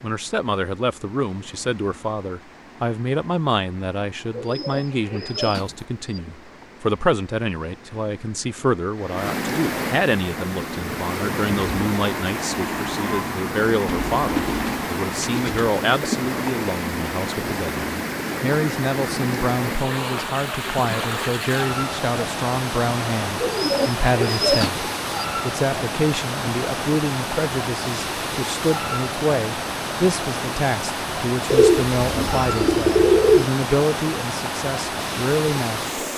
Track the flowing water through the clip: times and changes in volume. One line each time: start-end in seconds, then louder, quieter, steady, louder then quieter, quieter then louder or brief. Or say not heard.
0.0-36.1 louder.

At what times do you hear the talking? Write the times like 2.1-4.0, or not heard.
0.0-36.0.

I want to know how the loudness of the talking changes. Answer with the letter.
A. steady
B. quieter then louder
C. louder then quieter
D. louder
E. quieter
A.